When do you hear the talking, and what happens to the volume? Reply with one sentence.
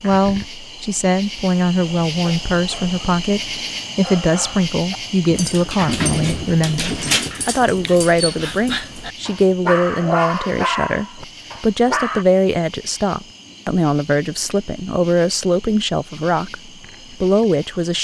You can hear the talking from 0.0 to 18.0 s, at a steady volume.